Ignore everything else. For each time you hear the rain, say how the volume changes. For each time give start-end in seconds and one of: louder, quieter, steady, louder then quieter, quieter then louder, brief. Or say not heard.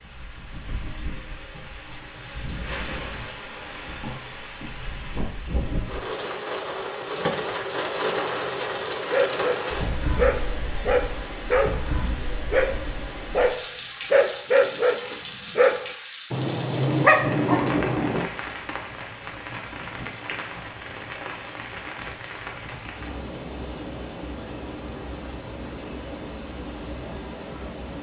0.0-27.9 louder then quieter.